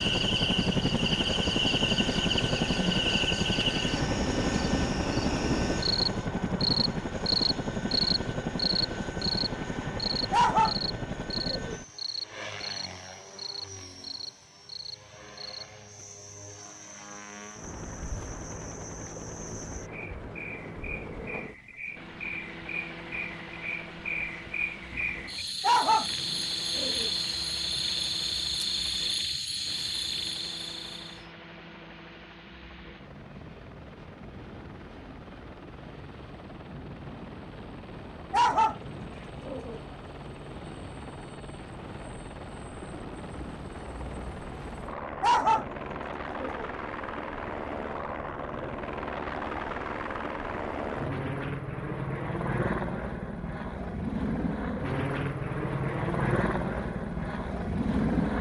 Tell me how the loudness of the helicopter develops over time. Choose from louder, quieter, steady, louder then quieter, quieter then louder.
quieter then louder.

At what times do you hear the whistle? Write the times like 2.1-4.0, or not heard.
not heard.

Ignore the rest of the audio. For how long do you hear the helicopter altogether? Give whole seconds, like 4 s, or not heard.
58 s.